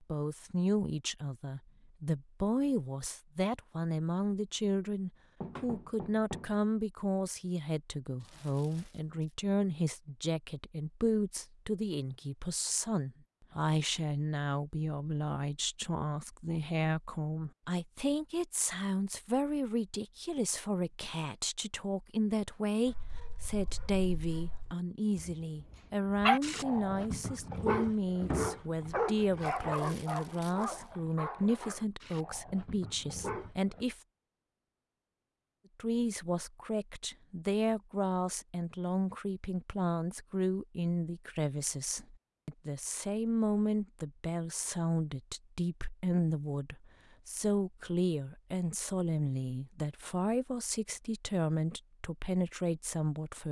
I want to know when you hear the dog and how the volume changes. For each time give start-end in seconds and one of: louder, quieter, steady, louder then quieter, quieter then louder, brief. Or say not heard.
22.9-33.9 louder then quieter.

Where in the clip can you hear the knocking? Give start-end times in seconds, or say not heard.
5.4-6.5.